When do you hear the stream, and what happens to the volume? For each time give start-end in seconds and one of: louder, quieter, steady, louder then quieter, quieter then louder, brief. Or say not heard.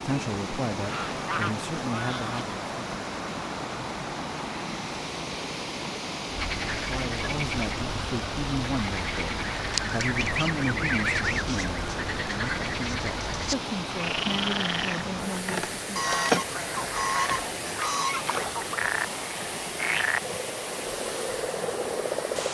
0.0-22.5 steady.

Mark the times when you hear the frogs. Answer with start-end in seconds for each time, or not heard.
6.3-22.5.